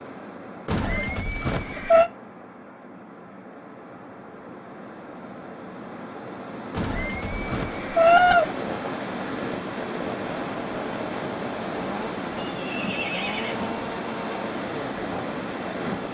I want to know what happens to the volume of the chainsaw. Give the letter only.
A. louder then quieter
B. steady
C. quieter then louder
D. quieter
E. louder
B.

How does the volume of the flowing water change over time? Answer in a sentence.
The loudness of the flowing water goes up.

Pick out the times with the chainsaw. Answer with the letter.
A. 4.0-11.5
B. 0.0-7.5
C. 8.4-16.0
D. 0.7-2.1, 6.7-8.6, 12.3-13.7
C.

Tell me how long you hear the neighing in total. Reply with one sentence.
You can hear the neighing for 5 seconds altogether.